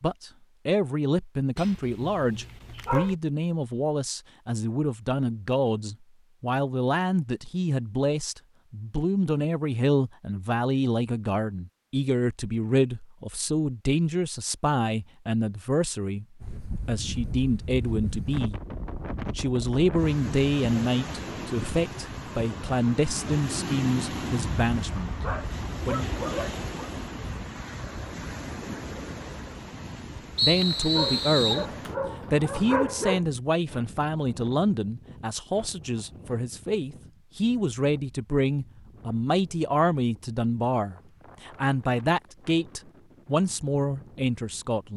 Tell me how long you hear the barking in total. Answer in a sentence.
The barking can be heard for 6 seconds in total.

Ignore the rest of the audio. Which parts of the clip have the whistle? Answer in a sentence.
You can hear the whistle from 30.4 to 31.6 s.